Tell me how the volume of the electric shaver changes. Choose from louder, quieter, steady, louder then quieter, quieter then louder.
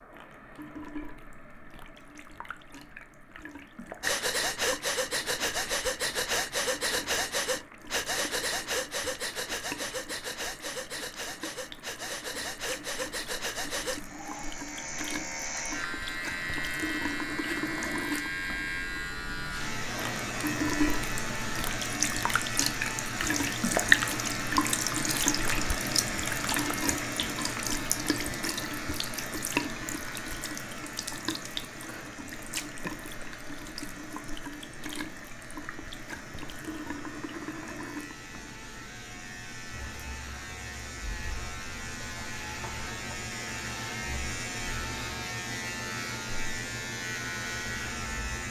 quieter then louder.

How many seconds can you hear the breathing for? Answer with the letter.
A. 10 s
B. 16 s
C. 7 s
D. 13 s
A.